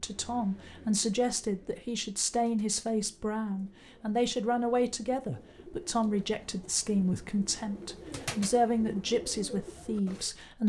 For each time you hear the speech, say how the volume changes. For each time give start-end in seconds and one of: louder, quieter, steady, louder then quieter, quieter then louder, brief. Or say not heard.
0.0-10.6 steady.